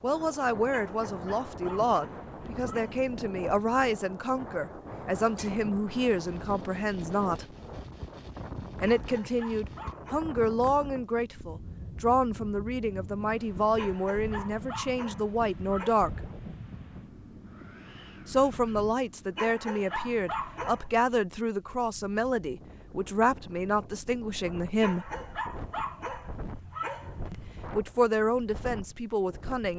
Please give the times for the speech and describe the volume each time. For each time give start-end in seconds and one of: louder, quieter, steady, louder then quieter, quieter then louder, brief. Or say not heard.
0.0-7.5 steady
8.8-16.2 steady
18.2-25.1 steady
27.3-29.7 brief.